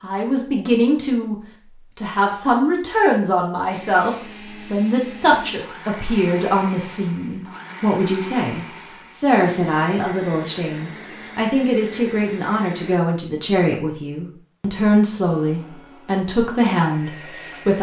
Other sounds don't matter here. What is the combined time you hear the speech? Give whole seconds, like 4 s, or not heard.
17 s.